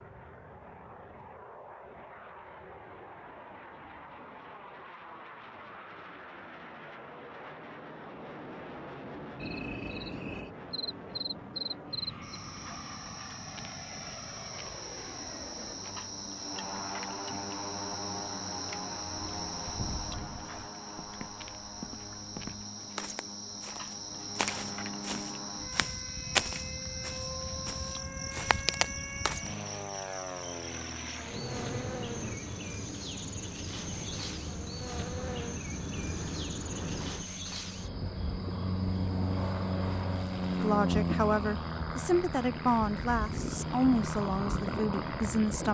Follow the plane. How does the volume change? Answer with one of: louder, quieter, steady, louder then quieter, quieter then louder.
louder.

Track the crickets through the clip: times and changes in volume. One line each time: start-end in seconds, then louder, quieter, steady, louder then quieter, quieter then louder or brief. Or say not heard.
9.3-45.6 steady.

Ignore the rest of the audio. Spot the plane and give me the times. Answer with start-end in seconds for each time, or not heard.
0.0-45.6.